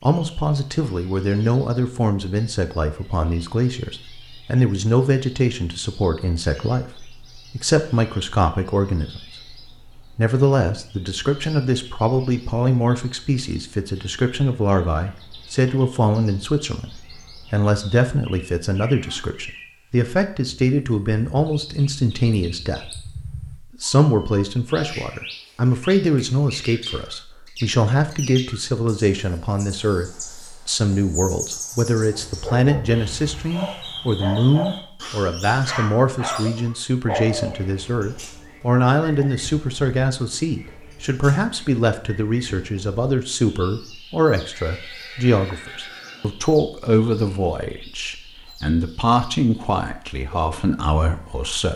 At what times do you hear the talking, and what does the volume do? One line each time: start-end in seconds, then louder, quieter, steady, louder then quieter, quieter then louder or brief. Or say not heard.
0.0-51.7 steady.